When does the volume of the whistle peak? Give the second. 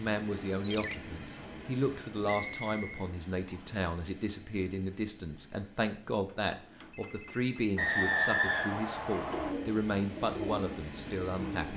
8 s.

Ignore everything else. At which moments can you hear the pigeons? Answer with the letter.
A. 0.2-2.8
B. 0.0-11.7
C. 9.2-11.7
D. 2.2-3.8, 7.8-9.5
C.